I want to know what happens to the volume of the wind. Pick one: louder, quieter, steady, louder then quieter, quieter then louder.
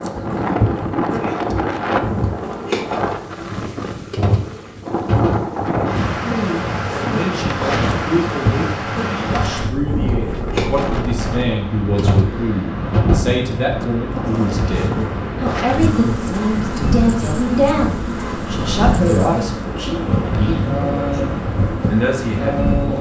steady.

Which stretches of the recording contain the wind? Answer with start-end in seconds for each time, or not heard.
0.0-22.9.